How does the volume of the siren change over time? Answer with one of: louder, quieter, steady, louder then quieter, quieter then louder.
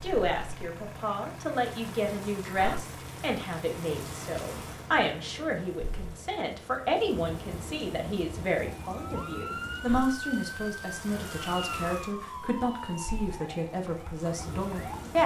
quieter.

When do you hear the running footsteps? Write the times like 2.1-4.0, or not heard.
not heard.